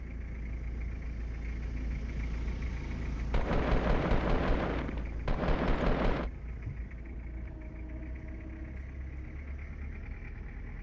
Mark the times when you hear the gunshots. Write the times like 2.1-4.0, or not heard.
3.3-6.3.